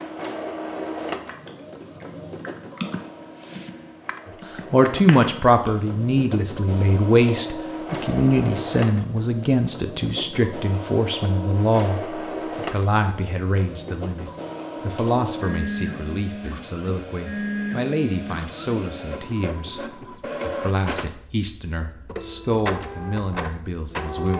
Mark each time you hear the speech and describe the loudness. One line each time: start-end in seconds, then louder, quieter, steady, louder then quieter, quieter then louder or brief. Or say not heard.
4.7-24.3 quieter.